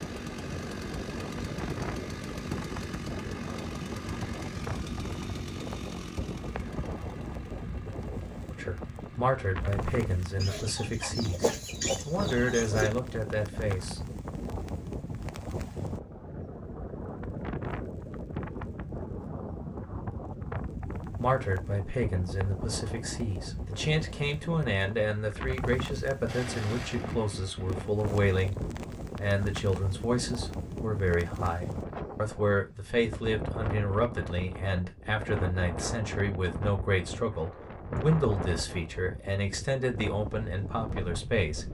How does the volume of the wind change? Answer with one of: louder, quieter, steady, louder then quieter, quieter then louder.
steady.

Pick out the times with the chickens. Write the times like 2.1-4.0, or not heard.
10.4-12.9.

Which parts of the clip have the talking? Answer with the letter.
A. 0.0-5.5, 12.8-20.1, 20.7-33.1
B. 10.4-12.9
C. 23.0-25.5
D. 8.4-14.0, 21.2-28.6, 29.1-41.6
D.